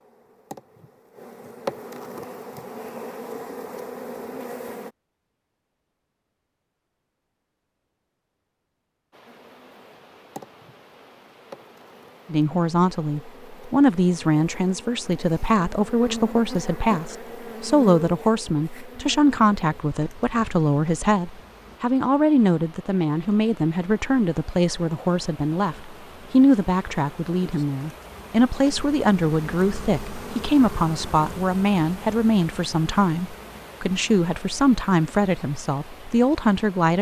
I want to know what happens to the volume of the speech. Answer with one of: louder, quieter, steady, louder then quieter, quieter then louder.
steady.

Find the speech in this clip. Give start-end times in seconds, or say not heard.
12.3-36.9.